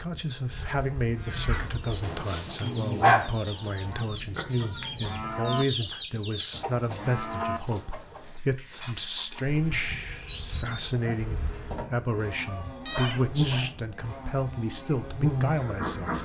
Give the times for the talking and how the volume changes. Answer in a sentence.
The talking can be heard from 0.0 to 16.1 s, at a steady volume.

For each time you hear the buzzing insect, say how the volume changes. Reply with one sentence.
The buzzing insect can be heard briefly from 0.0 to 2.2 s; and from 9.4 to 16.1 s, getting louder.